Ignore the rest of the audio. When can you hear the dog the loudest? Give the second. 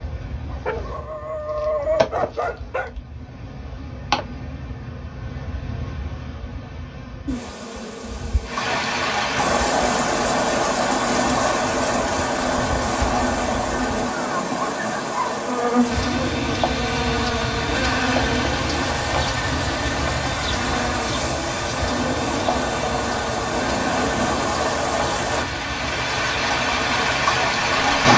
2 s.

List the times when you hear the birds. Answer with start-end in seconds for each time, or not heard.
not heard.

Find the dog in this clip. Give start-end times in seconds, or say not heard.
0.5-2.9.